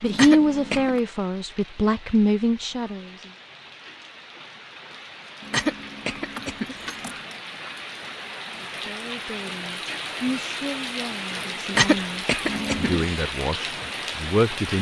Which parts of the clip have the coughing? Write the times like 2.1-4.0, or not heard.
0.1-0.9, 5.5-7.0, 11.8-13.1.